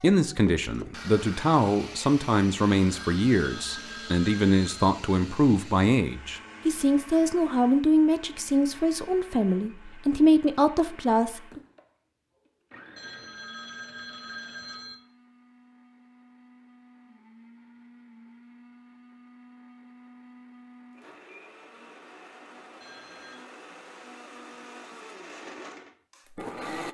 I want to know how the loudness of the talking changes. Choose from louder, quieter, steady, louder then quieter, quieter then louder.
steady.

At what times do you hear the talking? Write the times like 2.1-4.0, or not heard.
0.0-11.6.